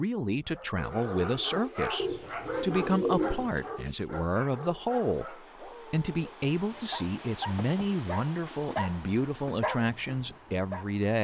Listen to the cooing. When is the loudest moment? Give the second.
3 s.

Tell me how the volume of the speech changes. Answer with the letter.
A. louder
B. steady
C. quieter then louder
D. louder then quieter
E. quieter
B.